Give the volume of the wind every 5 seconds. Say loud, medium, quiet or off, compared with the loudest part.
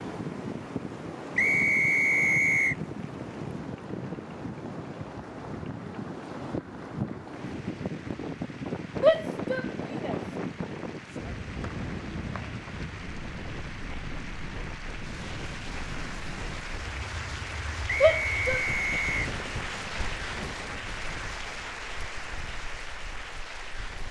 loud, loud, loud, medium, quiet.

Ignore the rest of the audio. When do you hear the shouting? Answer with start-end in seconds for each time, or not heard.
9.0-10.2, 18.0-18.6.